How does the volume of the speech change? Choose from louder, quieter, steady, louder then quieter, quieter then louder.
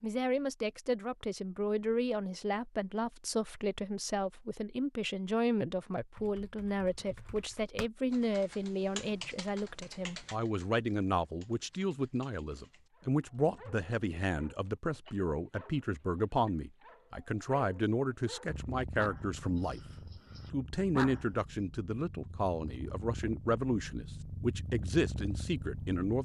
steady.